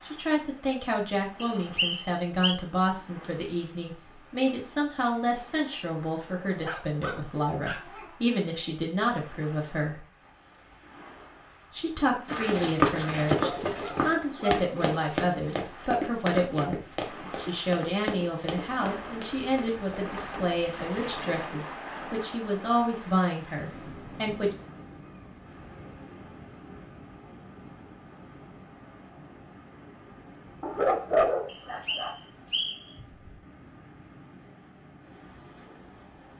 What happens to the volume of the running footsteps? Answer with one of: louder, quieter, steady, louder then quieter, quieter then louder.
quieter.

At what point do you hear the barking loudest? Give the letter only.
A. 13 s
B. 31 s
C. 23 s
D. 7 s
B.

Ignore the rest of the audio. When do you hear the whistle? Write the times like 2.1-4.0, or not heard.
1.4-2.5, 31.4-33.0.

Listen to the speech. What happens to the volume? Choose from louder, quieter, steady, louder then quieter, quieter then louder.
steady.